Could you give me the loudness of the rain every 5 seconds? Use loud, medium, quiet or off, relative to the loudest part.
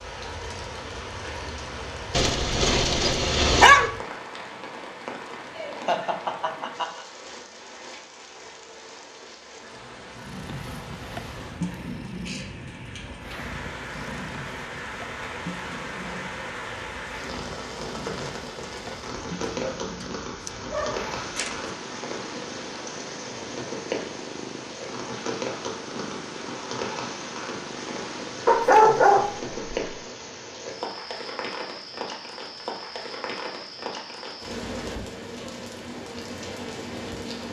loud, medium, medium, loud, loud, loud, loud, loud.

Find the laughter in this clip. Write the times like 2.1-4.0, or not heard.
5.5-7.0.